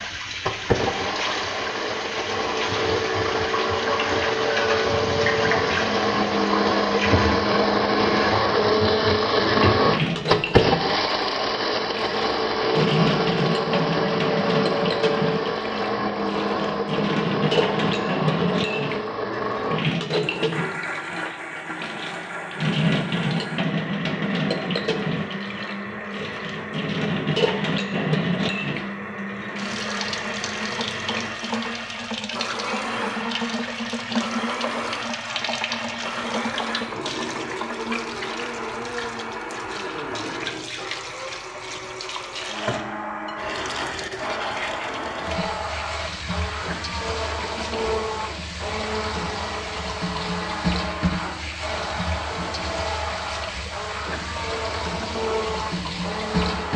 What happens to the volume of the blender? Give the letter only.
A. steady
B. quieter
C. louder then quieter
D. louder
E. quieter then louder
B.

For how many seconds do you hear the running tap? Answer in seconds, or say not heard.
57 s.